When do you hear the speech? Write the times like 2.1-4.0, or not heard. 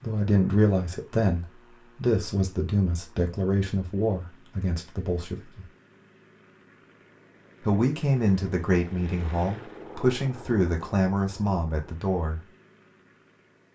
0.0-5.7, 7.6-12.4.